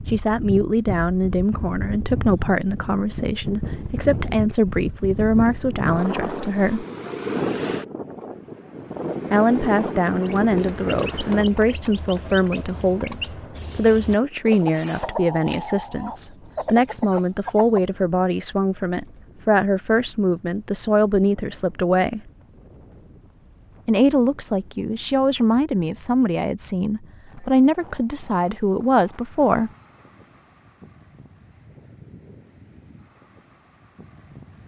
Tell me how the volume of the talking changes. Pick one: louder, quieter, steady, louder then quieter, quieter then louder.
steady.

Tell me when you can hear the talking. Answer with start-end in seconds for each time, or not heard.
0.1-6.8, 9.3-22.2, 23.9-29.7.